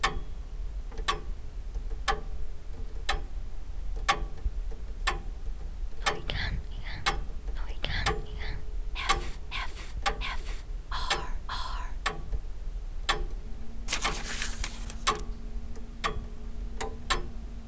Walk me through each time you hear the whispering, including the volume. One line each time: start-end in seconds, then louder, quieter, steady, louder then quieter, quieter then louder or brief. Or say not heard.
6.0-12.0 steady.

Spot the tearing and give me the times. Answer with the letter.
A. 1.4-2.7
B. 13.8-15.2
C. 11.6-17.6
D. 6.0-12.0
B.